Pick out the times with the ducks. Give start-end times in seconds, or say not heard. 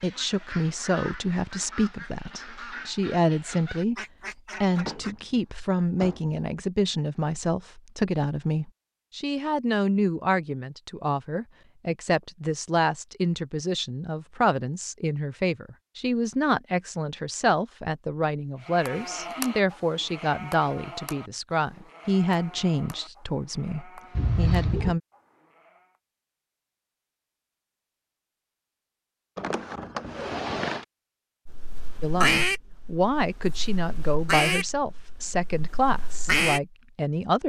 0.0-5.2, 31.4-36.6.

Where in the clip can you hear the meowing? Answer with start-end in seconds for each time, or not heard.
24.1-24.9.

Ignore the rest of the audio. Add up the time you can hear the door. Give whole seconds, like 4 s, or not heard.
3 s.